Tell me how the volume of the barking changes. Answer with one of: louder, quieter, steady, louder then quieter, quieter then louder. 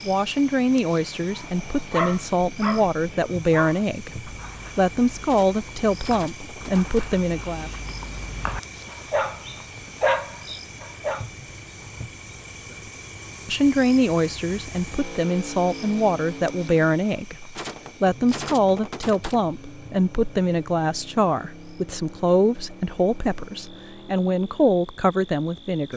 quieter then louder.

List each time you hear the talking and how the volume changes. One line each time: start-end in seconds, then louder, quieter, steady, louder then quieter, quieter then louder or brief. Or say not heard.
0.1-7.7 steady
13.4-25.9 steady.